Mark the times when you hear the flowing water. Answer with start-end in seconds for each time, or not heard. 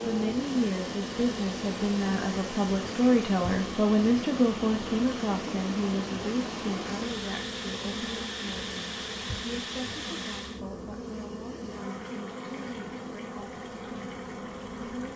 0.0-10.6.